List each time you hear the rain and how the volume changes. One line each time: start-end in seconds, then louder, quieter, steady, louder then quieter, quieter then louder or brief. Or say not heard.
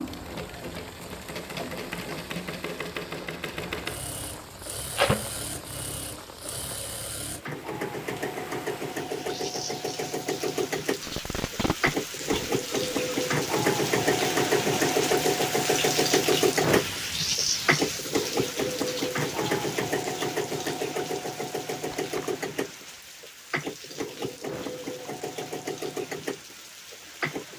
0.0-27.5 louder then quieter.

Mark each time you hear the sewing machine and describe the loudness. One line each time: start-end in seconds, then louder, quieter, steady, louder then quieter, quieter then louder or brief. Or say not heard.
0.0-27.5 louder then quieter.